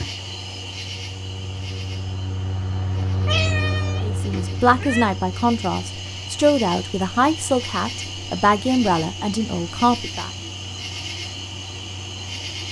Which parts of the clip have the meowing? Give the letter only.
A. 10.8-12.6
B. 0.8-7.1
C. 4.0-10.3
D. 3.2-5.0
D.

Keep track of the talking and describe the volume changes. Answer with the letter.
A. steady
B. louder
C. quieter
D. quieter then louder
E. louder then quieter
A.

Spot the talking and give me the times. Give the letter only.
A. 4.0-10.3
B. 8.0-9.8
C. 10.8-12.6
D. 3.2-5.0
A.